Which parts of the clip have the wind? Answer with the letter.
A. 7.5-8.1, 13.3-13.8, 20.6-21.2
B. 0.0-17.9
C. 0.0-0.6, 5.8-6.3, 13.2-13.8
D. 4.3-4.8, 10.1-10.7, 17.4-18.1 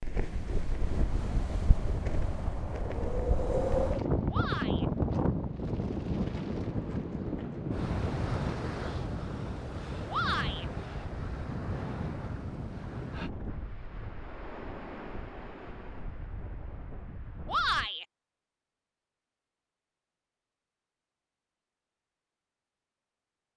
B.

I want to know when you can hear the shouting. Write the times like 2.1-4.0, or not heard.
4.3-4.8, 10.1-10.7, 17.4-18.1.